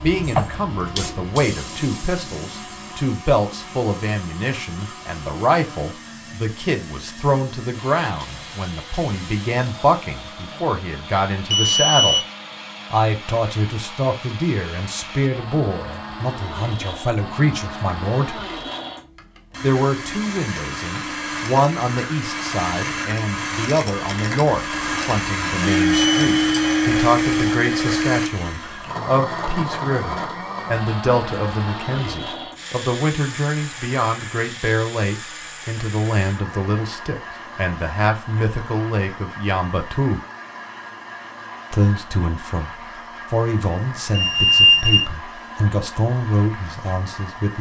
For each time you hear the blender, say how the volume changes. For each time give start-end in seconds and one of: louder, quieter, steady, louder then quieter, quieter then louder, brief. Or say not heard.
0.0-47.5 louder then quieter.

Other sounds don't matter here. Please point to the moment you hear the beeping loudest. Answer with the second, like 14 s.
45 s.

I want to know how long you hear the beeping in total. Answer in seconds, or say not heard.
3 s.